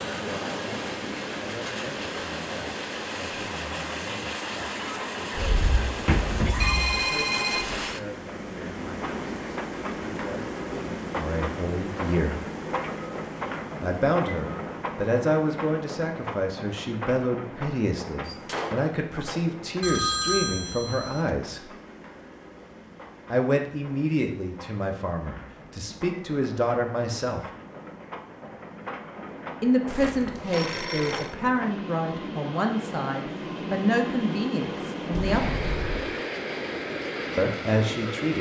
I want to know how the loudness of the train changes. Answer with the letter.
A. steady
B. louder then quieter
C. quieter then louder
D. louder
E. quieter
C.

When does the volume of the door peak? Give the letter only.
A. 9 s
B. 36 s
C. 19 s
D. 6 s
D.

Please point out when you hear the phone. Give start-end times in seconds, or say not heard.
6.6-7.7, 19.8-21.3, 29.9-31.4.